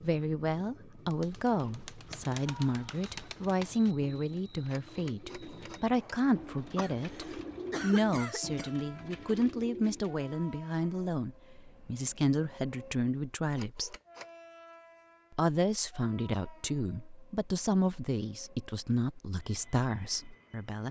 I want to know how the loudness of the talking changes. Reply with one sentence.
The volume of the talking stays about the same.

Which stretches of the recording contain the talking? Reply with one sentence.
The talking can be heard from 0.0 to 13.9 s and from 15.3 to 20.8 s.